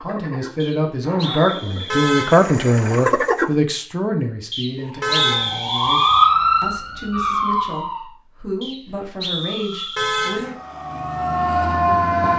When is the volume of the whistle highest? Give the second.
5 s.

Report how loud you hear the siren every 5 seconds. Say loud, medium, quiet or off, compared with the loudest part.
off, loud, loud.